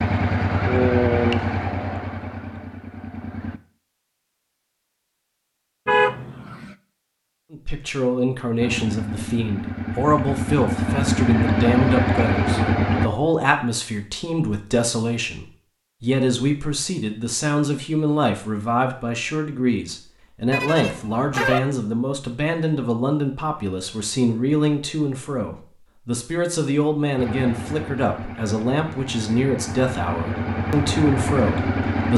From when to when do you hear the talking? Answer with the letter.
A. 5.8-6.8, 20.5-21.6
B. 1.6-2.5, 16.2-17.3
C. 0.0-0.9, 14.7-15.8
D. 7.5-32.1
D.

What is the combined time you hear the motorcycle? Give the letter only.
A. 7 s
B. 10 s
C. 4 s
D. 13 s
D.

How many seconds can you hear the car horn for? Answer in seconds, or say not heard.
2 s.